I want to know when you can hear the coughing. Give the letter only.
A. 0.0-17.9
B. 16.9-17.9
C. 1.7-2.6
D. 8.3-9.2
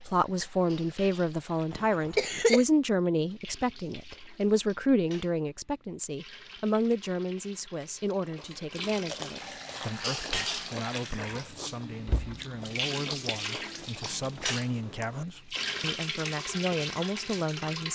C.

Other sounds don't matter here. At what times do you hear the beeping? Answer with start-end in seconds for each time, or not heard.
not heard.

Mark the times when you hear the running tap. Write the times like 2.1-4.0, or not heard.
0.0-17.9.